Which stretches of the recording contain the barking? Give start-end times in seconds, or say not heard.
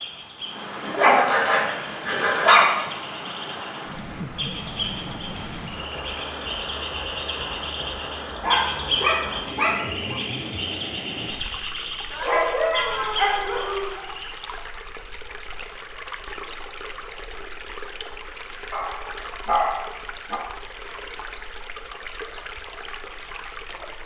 0.8-2.6, 8.4-10.2, 12.1-14.0, 18.7-20.4.